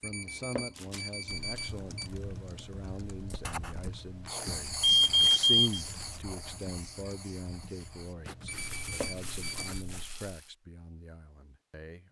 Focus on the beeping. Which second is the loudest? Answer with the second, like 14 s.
5 s.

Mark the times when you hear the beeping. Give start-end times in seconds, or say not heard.
0.0-2.0, 4.8-5.8, 8.4-9.7.